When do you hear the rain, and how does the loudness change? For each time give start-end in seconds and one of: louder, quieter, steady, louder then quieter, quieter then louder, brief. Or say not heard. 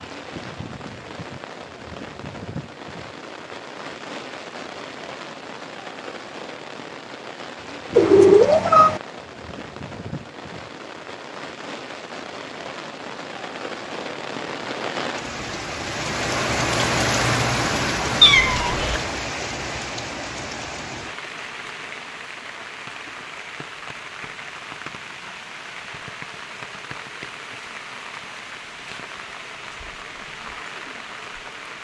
0.0-31.8 louder then quieter.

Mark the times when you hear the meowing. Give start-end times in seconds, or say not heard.
8.0-9.0, 18.2-19.0.